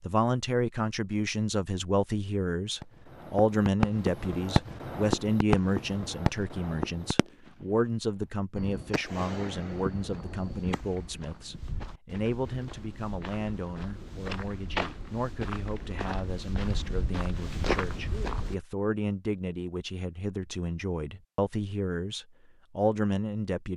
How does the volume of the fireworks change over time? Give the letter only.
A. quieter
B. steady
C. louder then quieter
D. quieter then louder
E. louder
A.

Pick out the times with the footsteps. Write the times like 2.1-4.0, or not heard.
9.9-18.6.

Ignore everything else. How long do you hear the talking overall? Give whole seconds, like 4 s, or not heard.
24 s.